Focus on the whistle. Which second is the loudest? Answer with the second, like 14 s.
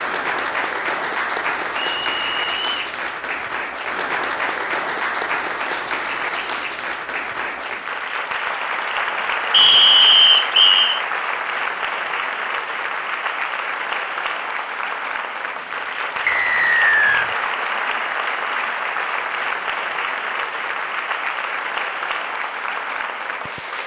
10 s.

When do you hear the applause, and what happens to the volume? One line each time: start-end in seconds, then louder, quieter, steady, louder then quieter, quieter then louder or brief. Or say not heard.
0.0-23.8 steady.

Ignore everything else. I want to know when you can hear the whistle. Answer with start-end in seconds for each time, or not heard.
1.9-2.9, 9.5-11.0, 16.2-17.3.